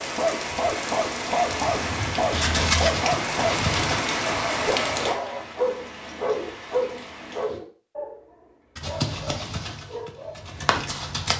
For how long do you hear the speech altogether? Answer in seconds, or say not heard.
not heard.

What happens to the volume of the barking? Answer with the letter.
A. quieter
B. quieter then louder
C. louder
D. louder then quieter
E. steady
A.